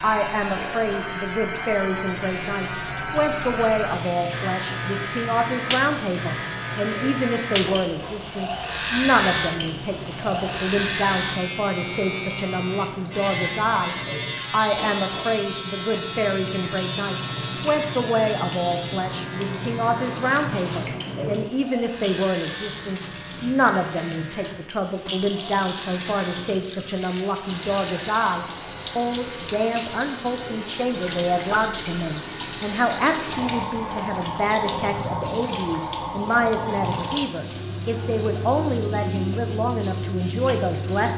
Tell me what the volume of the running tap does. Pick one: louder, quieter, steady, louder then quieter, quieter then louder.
louder.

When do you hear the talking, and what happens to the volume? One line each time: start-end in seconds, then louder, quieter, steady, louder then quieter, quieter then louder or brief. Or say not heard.
0.0-41.1 steady.